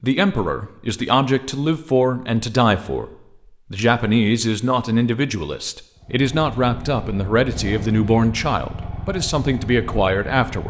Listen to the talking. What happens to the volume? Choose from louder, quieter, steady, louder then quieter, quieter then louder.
steady.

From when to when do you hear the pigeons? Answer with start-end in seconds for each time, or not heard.
not heard.